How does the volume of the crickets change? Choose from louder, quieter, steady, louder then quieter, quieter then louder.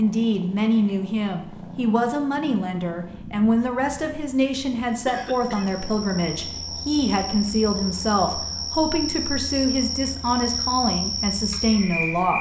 louder.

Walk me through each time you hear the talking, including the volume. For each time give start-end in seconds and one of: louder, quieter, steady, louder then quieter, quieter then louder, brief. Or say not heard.
0.0-12.3 steady.